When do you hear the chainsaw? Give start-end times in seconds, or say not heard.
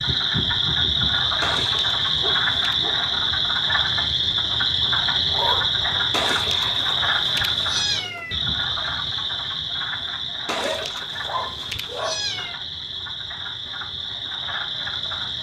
not heard.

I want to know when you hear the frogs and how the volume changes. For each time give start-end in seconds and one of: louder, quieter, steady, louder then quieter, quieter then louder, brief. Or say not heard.
0.0-15.3 quieter.